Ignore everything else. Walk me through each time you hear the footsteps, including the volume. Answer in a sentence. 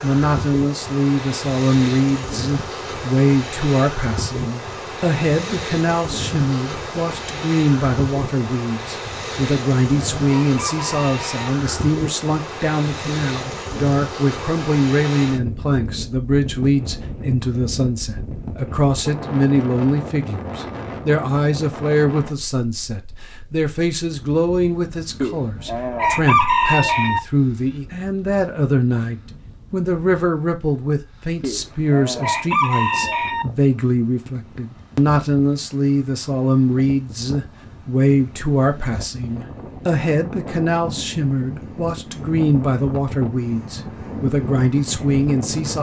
The footsteps can't be heard in this clip.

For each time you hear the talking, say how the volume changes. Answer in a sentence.
You can hear the talking from 0.0 to 45.7 s, at a steady volume.